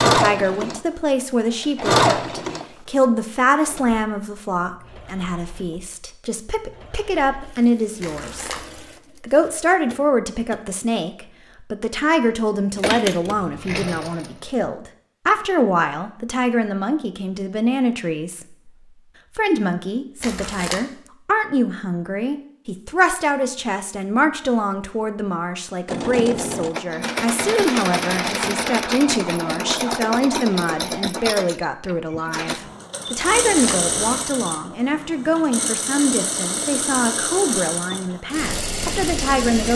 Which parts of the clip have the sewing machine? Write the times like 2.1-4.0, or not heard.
0.0-10.8, 12.8-14.6, 25.9-39.7.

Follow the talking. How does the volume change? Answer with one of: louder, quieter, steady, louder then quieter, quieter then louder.
steady.